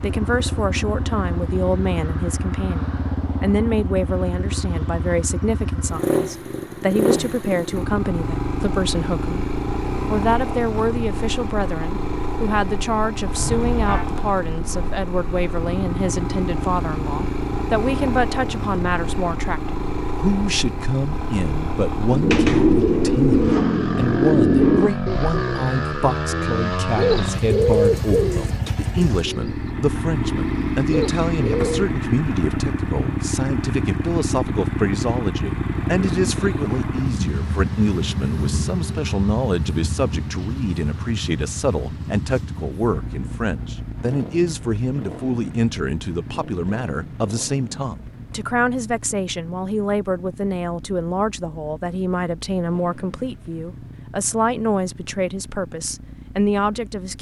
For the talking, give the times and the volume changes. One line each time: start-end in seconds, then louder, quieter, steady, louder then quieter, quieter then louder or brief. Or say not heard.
0.0-9.5 steady
10.1-57.1 steady.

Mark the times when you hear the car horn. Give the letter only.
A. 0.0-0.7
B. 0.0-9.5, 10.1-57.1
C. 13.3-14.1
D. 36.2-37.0
C.